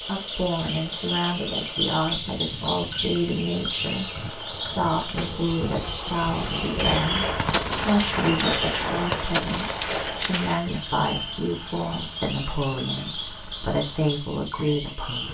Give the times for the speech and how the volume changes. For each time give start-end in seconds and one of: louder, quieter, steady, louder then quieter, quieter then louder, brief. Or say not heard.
0.1-15.3 steady.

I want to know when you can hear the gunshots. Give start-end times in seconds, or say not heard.
7.0-10.6.